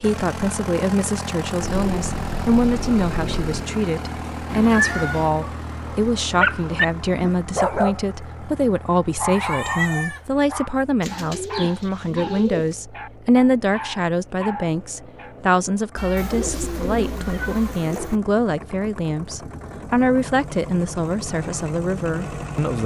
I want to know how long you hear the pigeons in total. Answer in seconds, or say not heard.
6 s.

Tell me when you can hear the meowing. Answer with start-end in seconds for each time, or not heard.
4.5-5.3, 9.3-10.3, 15.9-17.8.